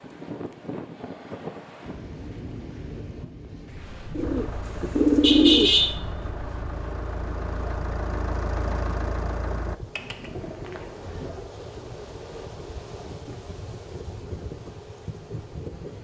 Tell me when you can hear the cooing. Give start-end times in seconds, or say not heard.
4.2-6.0, 9.9-11.5.